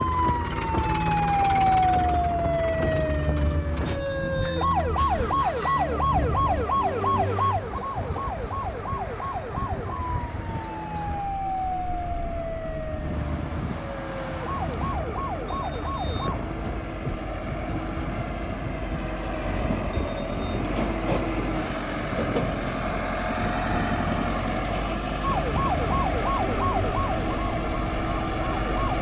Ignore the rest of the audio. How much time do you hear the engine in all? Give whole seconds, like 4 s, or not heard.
29 s.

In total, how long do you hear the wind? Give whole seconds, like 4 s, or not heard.
29 s.